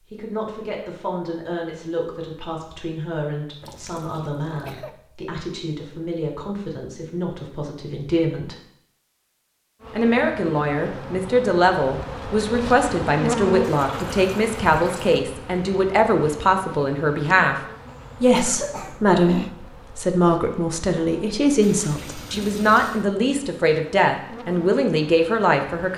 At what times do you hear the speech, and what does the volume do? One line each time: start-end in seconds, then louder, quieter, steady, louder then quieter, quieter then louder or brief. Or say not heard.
0.1-8.6 steady
9.9-17.6 steady
18.2-25.9 steady.